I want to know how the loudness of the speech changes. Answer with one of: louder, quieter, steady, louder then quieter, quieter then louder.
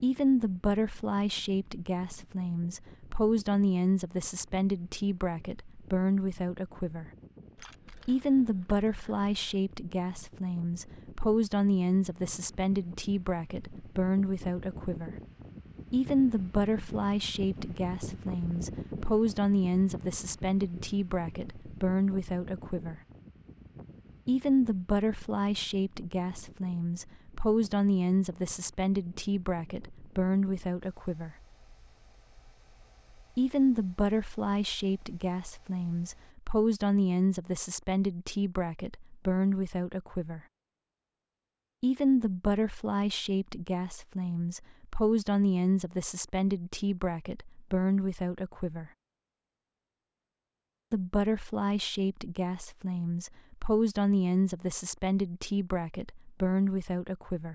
steady.